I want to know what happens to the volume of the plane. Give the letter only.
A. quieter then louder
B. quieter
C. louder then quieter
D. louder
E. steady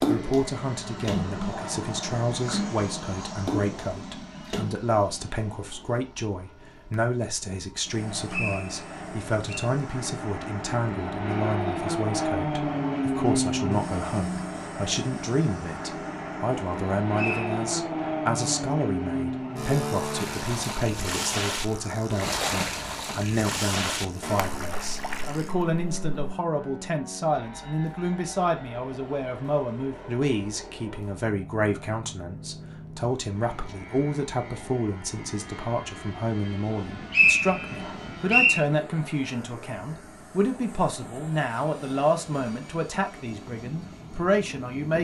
C.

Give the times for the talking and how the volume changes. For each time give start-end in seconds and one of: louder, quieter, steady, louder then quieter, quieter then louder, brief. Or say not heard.
0.1-44.9 steady.